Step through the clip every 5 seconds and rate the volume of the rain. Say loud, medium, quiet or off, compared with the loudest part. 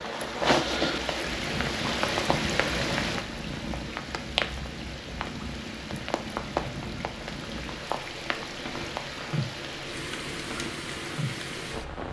loud, medium, medium.